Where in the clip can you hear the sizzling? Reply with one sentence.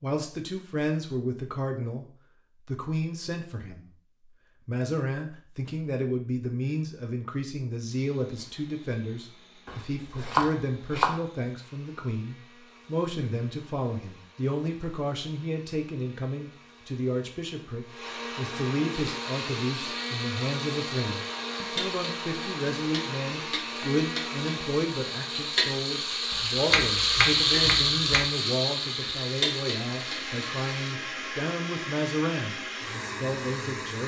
You can hear the sizzling from 18.9 to 30.9 s.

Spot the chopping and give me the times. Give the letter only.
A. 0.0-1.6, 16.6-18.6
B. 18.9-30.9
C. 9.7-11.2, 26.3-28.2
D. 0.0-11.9
C.